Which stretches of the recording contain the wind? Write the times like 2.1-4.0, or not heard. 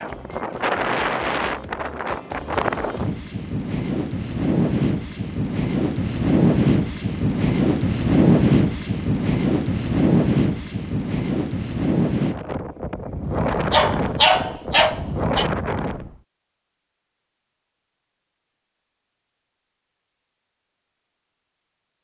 0.0-16.2.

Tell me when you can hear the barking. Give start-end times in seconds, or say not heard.
13.4-15.4.